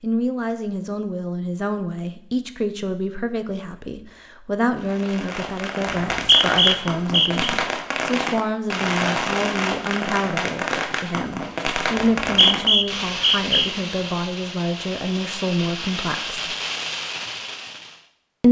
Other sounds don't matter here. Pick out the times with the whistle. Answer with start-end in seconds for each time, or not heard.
6.0-7.5, 11.9-13.7.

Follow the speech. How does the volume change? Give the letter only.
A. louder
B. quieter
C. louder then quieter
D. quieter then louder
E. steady
E.